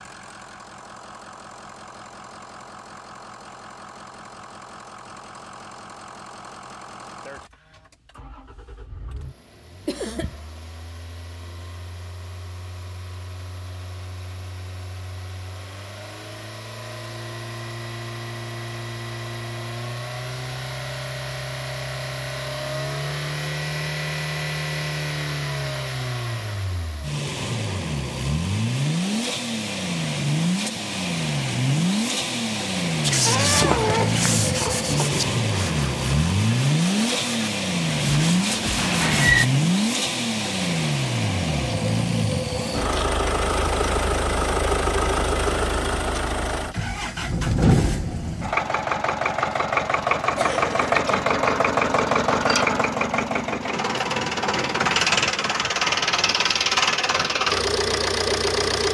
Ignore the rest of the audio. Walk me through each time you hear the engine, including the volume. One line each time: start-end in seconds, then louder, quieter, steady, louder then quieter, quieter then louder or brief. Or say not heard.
0.0-58.8 louder.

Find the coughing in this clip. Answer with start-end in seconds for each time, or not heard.
9.8-10.3, 33.2-35.1, 50.4-51.2.